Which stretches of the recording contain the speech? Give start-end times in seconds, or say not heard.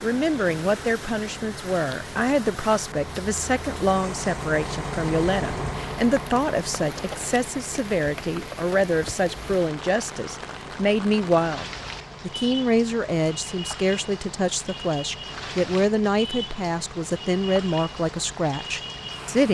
0.0-11.7, 12.2-19.5.